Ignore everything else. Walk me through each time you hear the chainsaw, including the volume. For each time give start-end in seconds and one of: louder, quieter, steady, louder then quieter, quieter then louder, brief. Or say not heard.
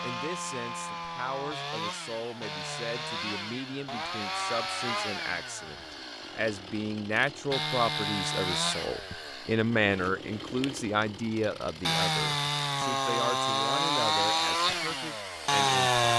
0.0-16.1 louder.